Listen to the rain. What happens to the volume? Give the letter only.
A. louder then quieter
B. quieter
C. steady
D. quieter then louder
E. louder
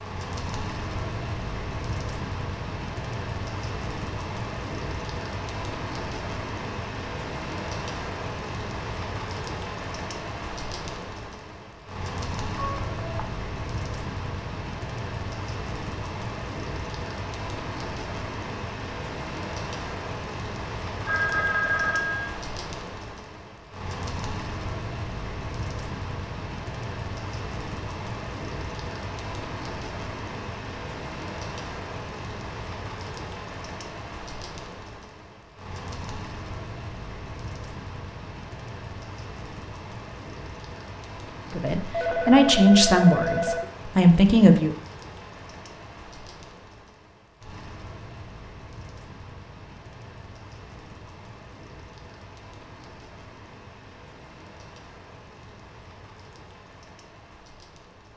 B.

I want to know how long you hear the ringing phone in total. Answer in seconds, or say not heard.
4 s.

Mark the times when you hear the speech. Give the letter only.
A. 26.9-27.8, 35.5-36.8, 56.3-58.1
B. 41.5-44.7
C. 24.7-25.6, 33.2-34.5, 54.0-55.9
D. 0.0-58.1
B.